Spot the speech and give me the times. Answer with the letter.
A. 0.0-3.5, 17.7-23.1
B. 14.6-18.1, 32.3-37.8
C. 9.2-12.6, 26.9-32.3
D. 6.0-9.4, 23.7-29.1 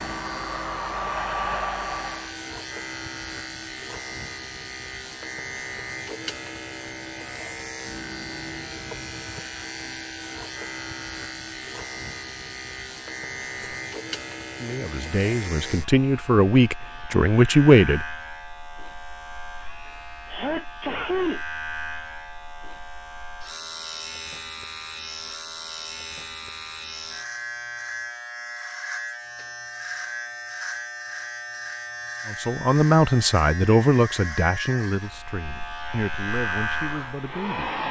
B.